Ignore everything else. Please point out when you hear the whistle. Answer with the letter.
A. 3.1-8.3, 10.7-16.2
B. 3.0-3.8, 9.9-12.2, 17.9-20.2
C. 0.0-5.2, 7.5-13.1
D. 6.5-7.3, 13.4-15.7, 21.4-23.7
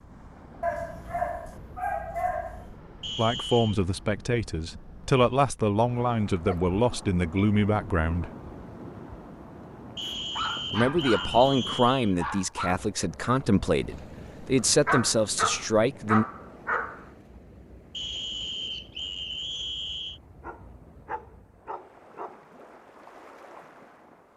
B.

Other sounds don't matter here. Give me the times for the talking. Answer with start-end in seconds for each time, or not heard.
3.1-8.3, 10.7-16.2.